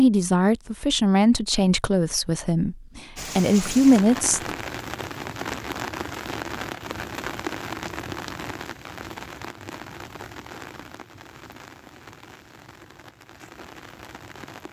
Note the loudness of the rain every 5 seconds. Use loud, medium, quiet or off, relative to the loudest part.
loud, loud, medium.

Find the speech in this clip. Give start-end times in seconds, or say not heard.
0.0-4.5.